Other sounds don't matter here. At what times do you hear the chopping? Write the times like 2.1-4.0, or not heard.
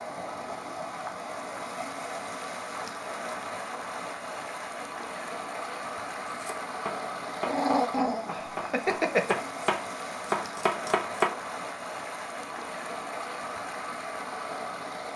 6.4-11.3.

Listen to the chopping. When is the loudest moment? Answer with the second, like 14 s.
11 s.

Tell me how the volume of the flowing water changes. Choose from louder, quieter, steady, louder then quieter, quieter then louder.
steady.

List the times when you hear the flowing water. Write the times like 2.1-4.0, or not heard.
0.0-15.1.